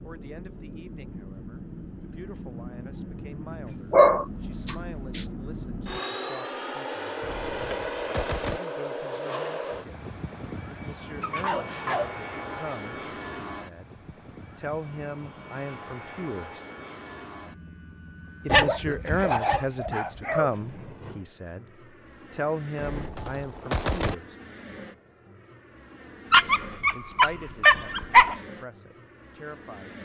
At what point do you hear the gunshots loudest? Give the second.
24 s.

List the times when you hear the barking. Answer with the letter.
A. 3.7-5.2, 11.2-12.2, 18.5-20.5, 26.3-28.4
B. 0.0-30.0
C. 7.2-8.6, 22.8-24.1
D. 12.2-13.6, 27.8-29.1
A.